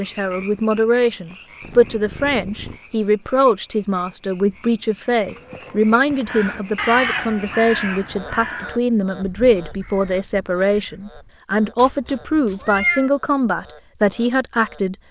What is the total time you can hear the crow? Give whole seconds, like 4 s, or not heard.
5 s.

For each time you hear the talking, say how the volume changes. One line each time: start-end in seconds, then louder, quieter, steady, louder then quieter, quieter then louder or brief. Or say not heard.
0.0-14.9 steady.